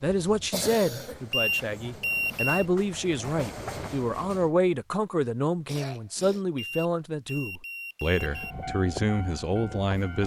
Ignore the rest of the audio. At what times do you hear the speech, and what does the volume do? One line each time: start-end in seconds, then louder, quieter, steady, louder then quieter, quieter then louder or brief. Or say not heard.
0.0-10.2 steady.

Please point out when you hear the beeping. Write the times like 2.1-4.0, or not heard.
1.3-2.6, 6.5-8.6.